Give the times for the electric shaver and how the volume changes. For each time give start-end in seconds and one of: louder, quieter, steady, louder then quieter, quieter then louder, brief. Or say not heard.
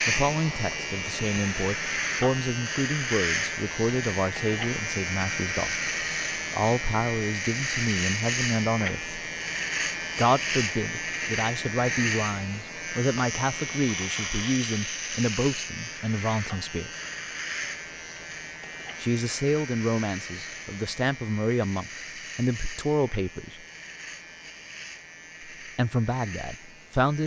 0.0-27.2 quieter.